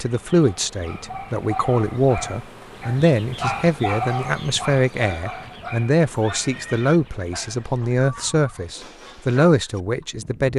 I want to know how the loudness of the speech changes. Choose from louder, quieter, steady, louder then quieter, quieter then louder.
steady.